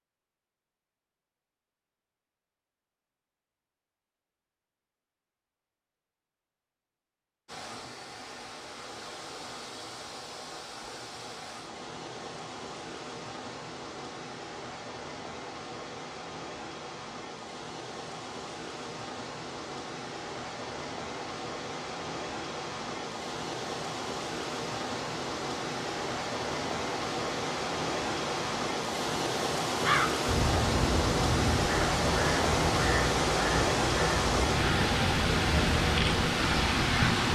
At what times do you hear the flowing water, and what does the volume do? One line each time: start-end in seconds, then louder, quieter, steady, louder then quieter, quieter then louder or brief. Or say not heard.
7.5-37.2 louder.